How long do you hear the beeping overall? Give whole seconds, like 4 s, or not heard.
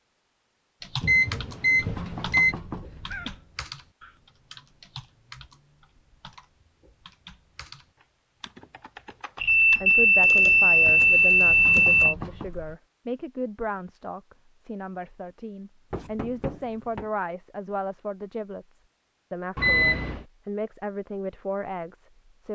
5 s.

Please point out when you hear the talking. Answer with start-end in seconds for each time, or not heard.
9.8-22.5.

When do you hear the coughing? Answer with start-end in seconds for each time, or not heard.
not heard.